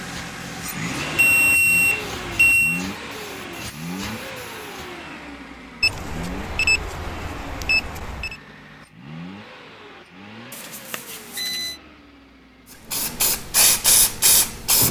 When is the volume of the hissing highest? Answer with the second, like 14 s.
14 s.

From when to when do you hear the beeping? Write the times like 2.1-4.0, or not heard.
1.1-2.9, 5.8-8.3, 10.5-11.8.